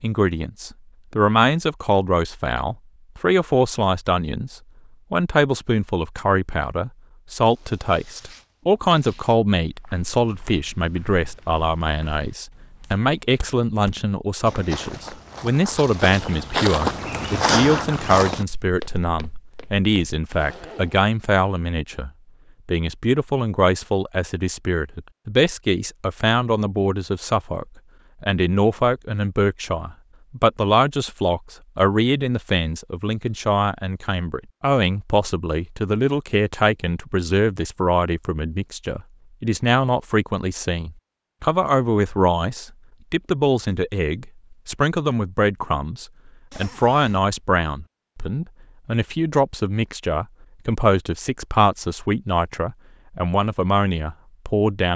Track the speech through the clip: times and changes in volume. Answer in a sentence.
You can hear the speech from 0.0 to 54.9 s, at a steady volume.